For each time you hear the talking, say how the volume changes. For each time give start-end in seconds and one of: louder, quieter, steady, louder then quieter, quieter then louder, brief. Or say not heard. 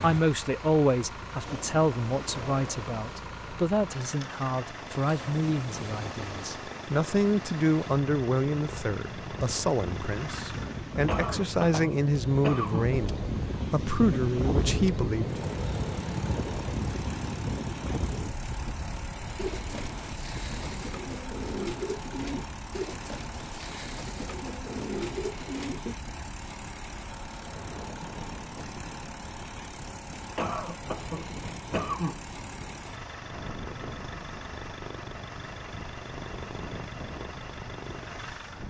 0.0-15.4 steady.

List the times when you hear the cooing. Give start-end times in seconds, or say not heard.
19.4-25.9.